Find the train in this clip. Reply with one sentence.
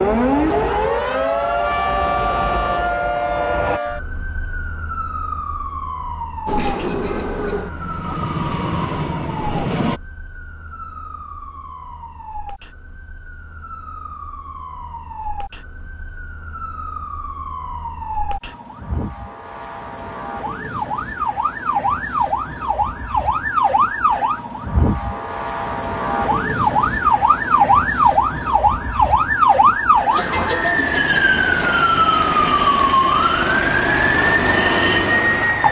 You can hear the train from 0.0 to 3.8 s and from 6.5 to 10.0 s.